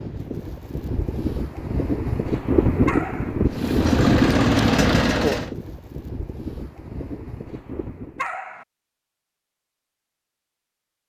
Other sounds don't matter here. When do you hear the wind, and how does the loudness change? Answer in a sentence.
You can hear the wind from 0.0 to 8.2 s, getting louder then quieter.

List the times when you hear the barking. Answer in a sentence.
You can hear the barking from 2.9 to 3.3 s and from 8.2 to 8.7 s.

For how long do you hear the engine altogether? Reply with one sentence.
The engine can be heard for 2 seconds in total.